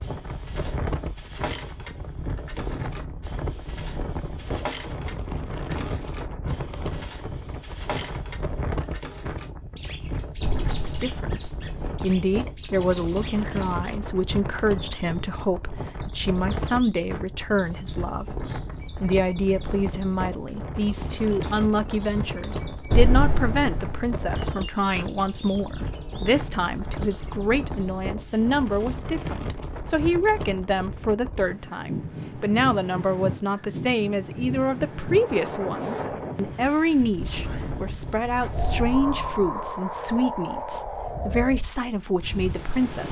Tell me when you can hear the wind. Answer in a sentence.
You can hear the wind from 0.0 to 43.0 s.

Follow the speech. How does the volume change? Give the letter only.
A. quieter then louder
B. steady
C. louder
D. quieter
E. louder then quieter
B.